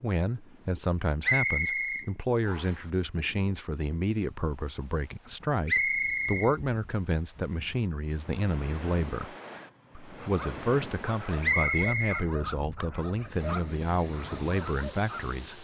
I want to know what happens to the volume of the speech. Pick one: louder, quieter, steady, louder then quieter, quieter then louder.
steady.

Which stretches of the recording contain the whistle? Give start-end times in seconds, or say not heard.
1.2-2.8, 5.7-6.5, 11.4-12.2.